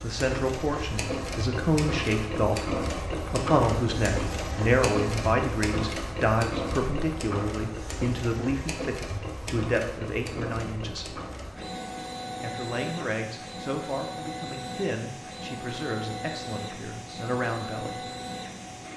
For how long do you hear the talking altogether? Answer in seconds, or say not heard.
17 s.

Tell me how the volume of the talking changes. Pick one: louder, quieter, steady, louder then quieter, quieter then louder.
quieter.